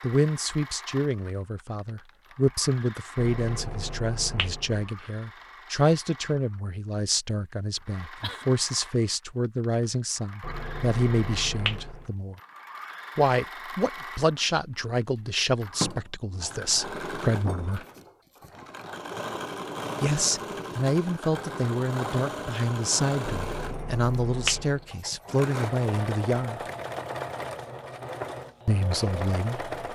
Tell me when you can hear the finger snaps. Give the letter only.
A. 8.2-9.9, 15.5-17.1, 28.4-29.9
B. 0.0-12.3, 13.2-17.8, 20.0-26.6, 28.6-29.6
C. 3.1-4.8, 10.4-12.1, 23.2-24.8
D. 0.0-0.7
C.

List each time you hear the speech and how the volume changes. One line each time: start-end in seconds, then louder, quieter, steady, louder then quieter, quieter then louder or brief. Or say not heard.
0.0-12.3 steady
13.2-17.8 quieter then louder
20.0-26.6 steady
28.6-29.6 brief.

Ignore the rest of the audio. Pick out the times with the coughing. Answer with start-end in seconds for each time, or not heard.
7.8-8.4.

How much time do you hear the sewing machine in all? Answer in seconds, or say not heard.
30 s.